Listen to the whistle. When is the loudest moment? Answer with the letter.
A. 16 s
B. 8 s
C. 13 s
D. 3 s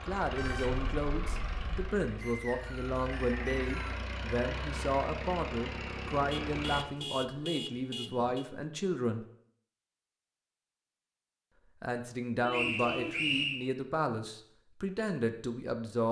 C.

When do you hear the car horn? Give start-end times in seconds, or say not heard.
0.3-1.9, 6.3-8.4, 12.4-13.2.